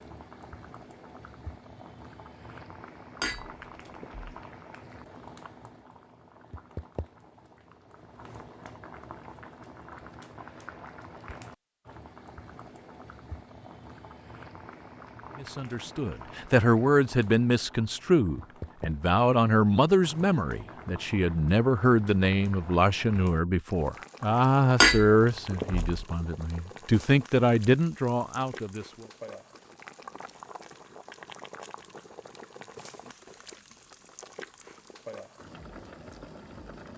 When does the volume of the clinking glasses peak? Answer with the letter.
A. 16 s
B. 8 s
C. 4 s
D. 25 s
D.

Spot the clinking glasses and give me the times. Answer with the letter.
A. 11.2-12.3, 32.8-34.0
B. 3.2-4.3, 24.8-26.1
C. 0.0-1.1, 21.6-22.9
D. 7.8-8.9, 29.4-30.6
B.